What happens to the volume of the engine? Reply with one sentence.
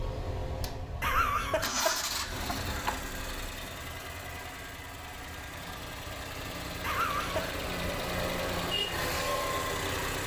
The volume of the engine goes down, then up.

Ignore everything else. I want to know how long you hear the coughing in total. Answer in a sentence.
You can hear the coughing for 3 seconds altogether.